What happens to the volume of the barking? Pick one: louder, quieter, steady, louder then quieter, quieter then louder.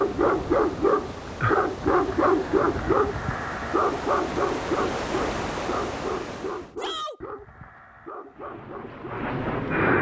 quieter.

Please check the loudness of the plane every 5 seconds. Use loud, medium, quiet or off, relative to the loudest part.
off, loud.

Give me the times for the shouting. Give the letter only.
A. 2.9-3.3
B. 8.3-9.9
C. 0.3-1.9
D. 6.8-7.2
D.